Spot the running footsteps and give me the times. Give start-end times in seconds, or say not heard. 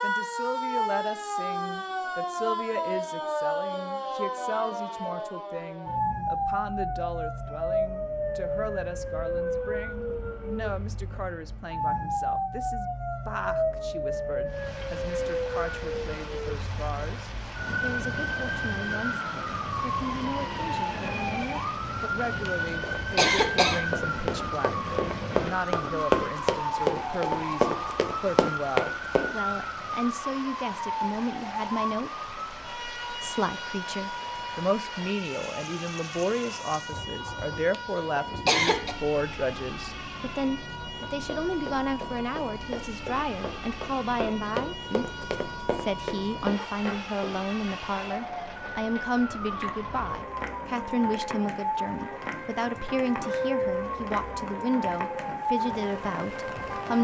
22.8-29.3, 41.0-47.4.